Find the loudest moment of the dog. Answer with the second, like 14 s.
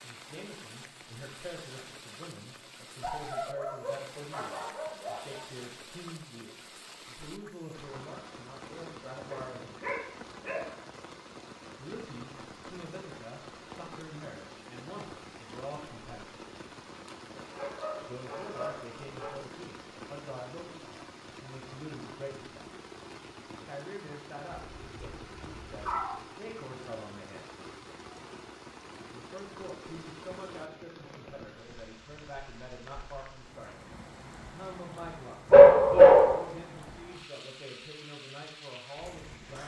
36 s.